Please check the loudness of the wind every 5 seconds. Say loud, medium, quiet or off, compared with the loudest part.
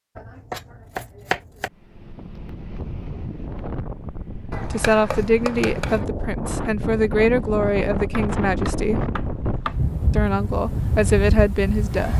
medium, loud, loud.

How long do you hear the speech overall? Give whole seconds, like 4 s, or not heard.
6 s.